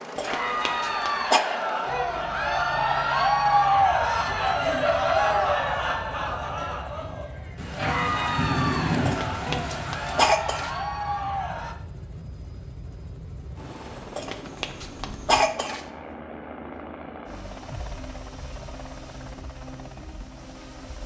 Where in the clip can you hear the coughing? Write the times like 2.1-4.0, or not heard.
0.1-1.4, 9.1-10.7, 14.2-15.8.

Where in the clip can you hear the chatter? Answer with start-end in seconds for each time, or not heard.
0.1-11.8.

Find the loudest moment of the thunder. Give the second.
9 s.